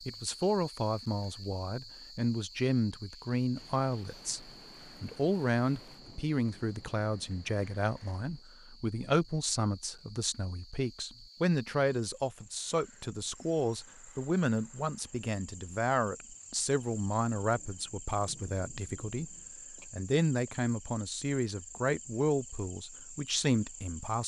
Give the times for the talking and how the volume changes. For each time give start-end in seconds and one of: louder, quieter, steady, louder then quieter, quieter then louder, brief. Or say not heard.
0.1-24.2 steady.